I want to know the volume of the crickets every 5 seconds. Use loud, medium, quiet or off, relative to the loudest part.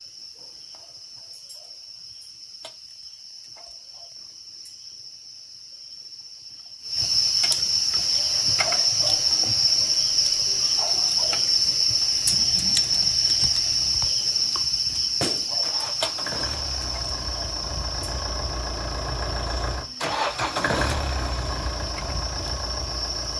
quiet, loud, loud, medium, quiet.